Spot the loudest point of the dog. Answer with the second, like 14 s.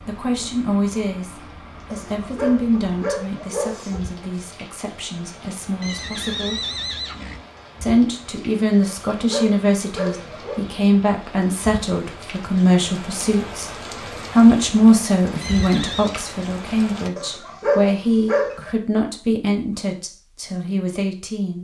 18 s.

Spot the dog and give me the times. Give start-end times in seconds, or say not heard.
1.9-4.0, 8.8-10.6, 17.1-18.7.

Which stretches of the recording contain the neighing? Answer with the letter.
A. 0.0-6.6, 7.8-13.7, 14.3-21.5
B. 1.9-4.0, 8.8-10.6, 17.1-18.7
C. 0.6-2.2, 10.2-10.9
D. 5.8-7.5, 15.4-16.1
D.